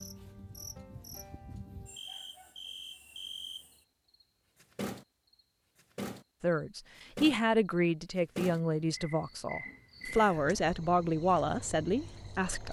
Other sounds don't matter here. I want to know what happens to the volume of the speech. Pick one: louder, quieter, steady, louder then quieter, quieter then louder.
quieter then louder.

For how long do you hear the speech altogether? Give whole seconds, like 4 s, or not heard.
6 s.